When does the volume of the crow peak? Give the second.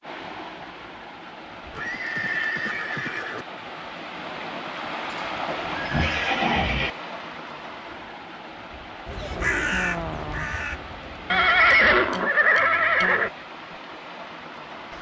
10 s.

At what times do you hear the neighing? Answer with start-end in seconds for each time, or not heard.
1.8-3.5, 5.1-6.9, 11.3-13.3.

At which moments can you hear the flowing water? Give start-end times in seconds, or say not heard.
0.0-14.9.